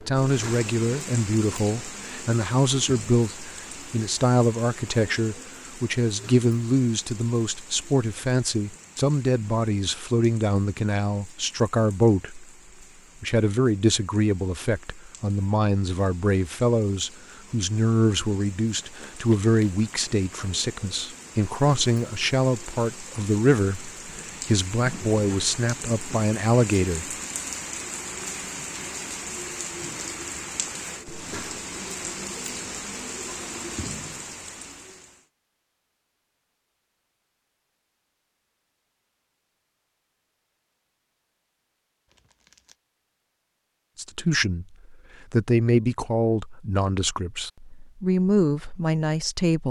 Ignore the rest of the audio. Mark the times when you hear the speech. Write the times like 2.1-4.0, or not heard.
0.0-12.4, 13.2-27.1, 44.0-49.6.